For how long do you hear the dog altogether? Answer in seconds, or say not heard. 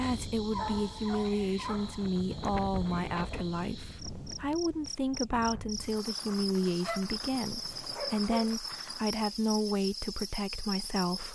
3 s.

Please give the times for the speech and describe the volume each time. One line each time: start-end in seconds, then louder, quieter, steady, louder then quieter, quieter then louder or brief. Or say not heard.
0.0-11.2 steady.